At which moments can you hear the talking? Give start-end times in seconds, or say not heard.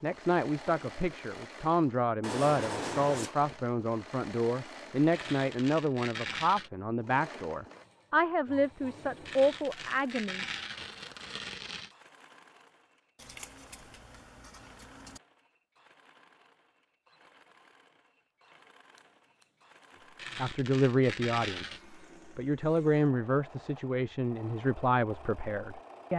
0.0-10.4, 20.4-26.1.